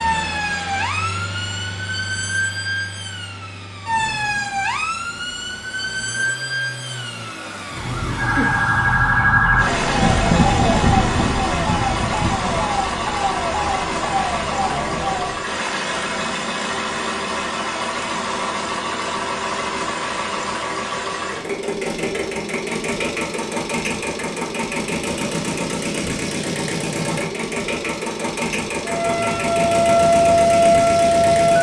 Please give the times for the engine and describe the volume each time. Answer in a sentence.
The engine can be heard from 0.0 to 31.5 s, getting louder.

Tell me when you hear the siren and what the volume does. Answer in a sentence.
The siren can be heard from 0.0 to 15.4 s, getting louder then quieter; and briefly from 28.9 to 31.5 s.